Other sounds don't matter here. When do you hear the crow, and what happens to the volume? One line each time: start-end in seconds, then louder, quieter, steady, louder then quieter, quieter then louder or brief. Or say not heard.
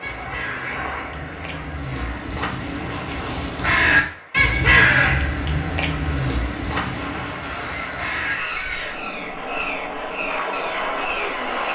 0.0-11.6 louder then quieter.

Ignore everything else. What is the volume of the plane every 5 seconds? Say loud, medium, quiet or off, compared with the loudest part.
medium, medium, loud.